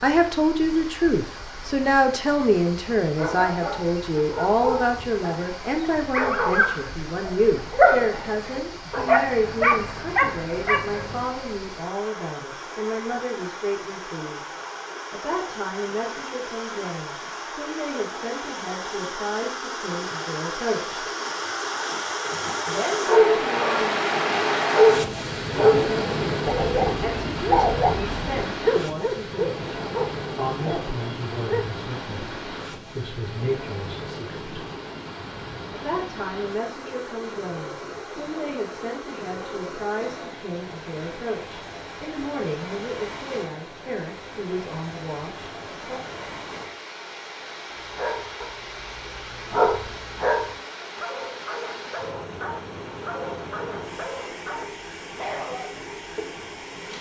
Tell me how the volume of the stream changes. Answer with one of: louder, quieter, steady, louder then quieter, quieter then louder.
louder then quieter.